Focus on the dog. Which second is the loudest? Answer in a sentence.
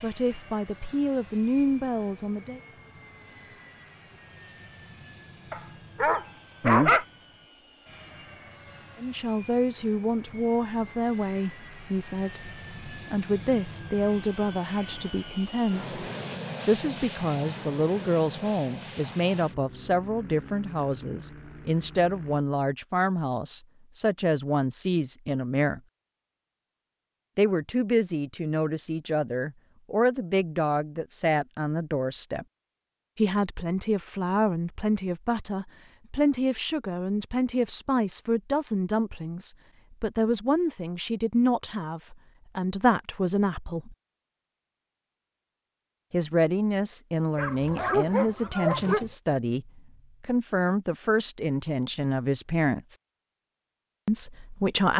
The volume of the dog peaks at 7 seconds.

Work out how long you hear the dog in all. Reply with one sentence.
You can hear the dog for 3 seconds altogether.